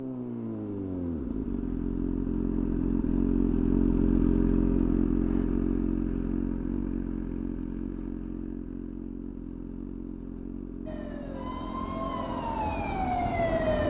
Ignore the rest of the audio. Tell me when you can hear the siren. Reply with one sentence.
You can hear the siren from 10.8 to 13.8 s.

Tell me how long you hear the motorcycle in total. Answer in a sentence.
The motorcycle can be heard for 14 seconds in total.